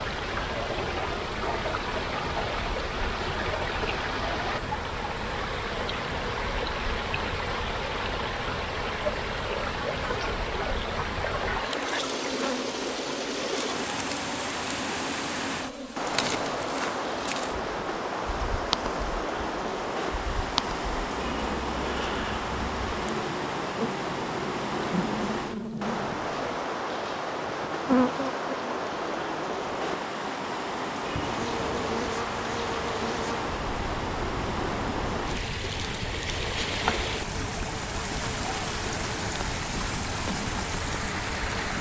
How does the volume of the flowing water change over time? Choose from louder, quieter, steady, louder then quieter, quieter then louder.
steady.